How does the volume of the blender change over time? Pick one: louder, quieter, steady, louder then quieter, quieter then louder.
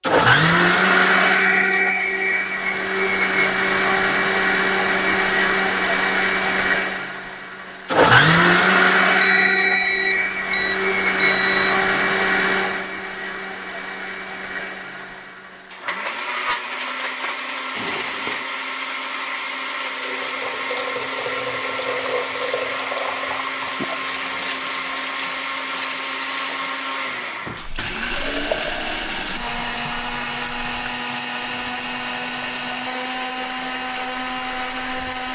quieter.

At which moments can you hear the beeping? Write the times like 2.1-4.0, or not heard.
9.4-11.8, 17.8-18.4.